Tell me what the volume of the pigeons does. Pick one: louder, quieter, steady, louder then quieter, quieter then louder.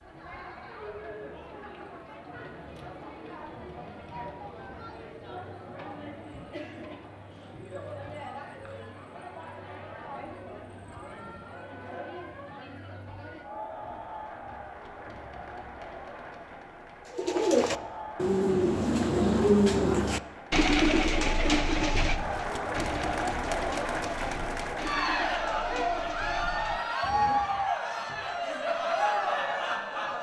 quieter.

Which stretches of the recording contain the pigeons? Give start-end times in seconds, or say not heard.
17.1-27.8.